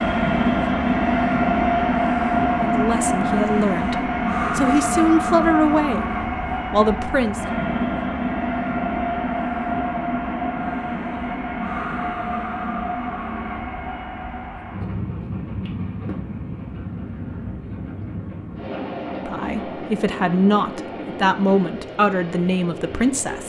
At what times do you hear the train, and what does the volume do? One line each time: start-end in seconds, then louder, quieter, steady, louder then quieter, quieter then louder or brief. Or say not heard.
0.0-23.4 quieter.